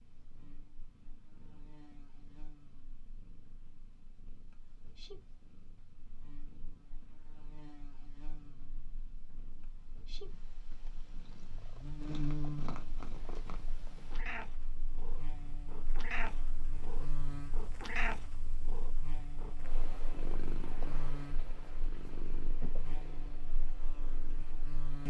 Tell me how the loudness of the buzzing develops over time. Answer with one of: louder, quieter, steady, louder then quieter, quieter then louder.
louder then quieter.